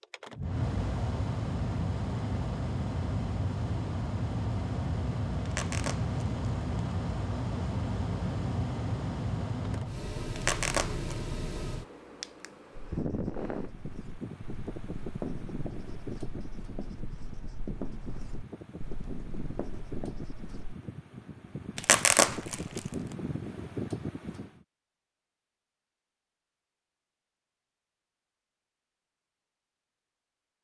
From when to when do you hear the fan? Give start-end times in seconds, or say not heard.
0.0-24.6.